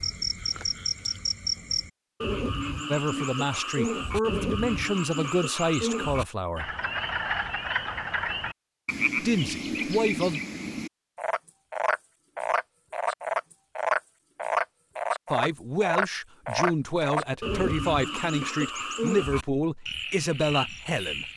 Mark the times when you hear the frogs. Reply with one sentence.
The frogs can be heard from 0.0 to 21.3 s.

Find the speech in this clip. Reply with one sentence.
You can hear the speech from 2.9 to 6.7 s, from 9.2 to 10.4 s and from 15.3 to 21.2 s.